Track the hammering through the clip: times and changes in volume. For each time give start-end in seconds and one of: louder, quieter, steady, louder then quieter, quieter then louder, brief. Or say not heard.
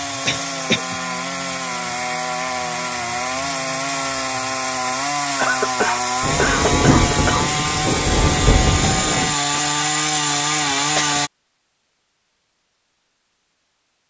not heard.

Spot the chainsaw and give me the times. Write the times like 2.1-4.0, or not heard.
0.0-11.3.